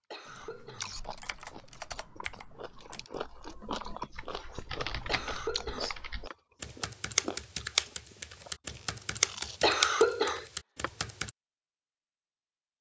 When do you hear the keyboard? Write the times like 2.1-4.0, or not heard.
0.2-11.3.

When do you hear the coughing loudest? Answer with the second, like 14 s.
10 s.